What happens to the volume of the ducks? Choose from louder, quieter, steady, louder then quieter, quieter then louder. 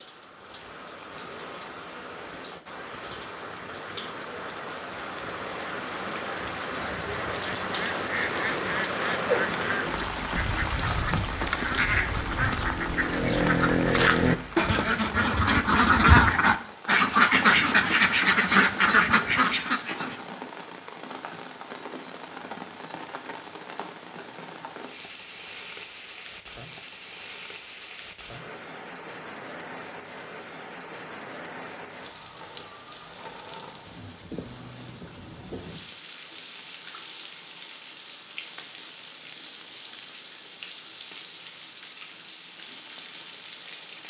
louder.